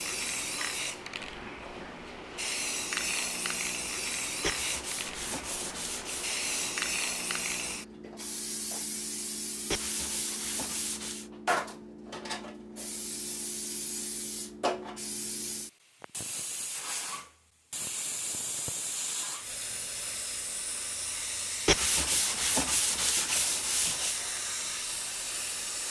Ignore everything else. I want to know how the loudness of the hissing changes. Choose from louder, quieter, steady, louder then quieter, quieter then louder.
steady.